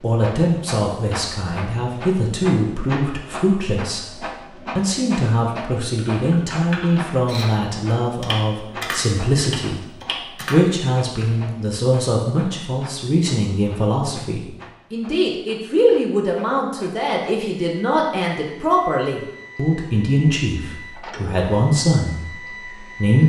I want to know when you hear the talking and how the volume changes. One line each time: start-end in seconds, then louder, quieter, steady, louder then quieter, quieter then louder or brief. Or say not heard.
0.0-9.8 steady
10.5-23.2 steady.